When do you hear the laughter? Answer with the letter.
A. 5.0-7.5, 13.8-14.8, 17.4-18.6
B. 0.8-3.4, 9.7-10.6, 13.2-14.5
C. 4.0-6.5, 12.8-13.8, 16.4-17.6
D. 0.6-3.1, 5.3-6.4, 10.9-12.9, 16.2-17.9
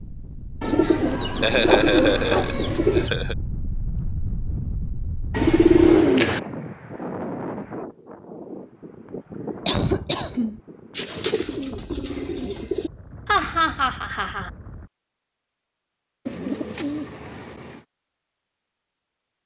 B.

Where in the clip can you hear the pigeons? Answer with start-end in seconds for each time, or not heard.
0.6-3.1, 5.3-6.4, 10.9-12.9, 16.2-17.9.